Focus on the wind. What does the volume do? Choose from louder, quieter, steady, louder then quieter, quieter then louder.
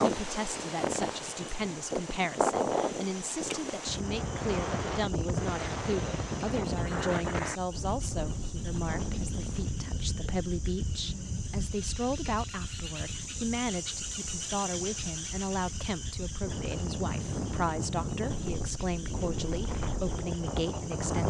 quieter then louder.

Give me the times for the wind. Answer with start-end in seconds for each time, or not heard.
0.0-21.2.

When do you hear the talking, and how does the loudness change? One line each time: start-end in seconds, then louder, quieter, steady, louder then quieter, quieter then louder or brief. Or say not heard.
0.0-21.2 steady.